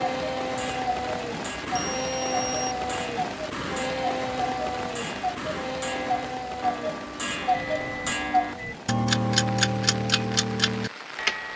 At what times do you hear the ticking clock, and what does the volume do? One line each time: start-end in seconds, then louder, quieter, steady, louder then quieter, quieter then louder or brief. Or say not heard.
0.0-11.5 louder.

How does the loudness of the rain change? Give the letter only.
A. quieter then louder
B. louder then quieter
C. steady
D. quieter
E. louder
D.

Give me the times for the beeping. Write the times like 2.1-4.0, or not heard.
1.8-2.8, 7.5-8.8.